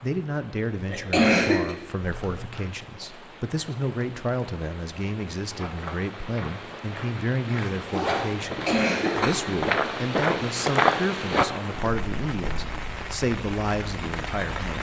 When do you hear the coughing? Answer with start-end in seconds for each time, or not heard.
0.8-1.8, 8.4-9.6.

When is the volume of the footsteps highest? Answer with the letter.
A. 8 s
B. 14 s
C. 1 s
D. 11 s
D.